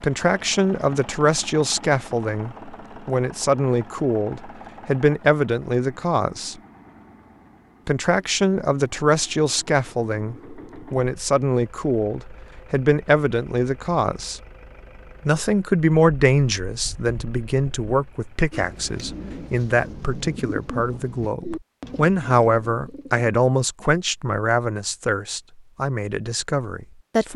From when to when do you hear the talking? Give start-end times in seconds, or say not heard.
0.0-6.5, 7.8-14.4, 15.2-27.3.